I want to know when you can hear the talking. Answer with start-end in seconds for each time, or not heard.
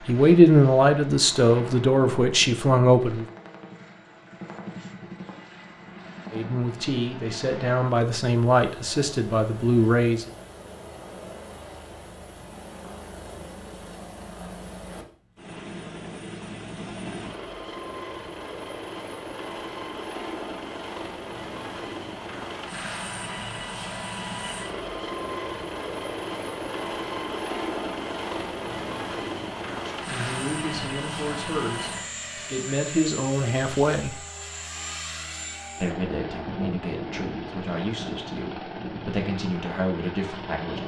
0.1-3.2, 6.3-10.3, 29.9-34.1, 35.8-40.8.